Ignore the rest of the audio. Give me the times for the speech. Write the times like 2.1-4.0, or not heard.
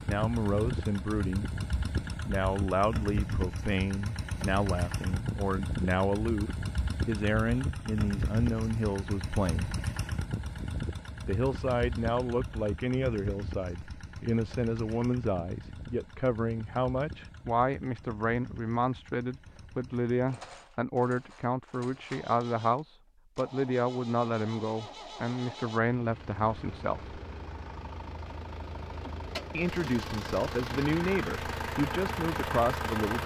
0.1-1.6, 2.2-9.8, 11.2-27.1, 29.6-33.2.